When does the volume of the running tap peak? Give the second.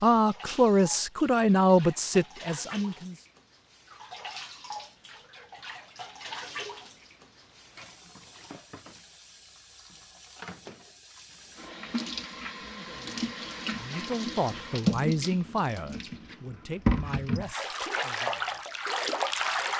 17 s.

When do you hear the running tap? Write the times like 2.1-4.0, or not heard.
0.1-19.7.